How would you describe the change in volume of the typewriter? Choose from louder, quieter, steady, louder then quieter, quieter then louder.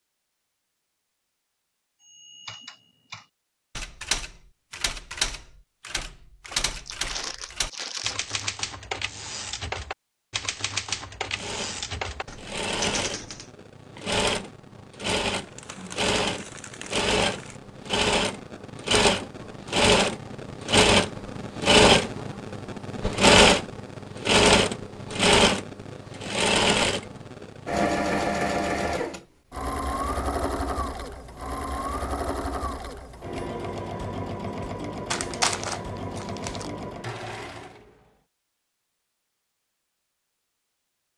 steady.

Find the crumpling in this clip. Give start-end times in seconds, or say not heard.
6.5-8.4, 15.3-17.6, 35.1-36.7.